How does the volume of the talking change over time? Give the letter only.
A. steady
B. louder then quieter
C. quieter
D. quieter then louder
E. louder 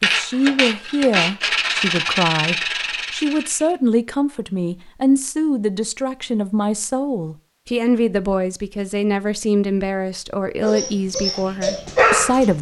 A.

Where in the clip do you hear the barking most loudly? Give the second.
12 s.